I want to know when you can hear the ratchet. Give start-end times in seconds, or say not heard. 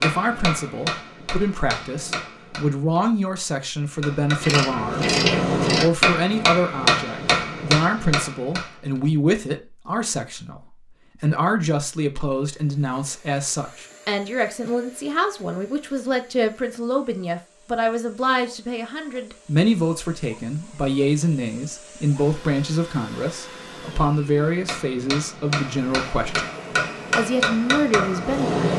4.4-5.9.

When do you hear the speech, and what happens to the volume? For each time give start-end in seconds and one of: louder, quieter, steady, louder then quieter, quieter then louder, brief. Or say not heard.
0.0-26.5 steady
27.1-28.5 brief.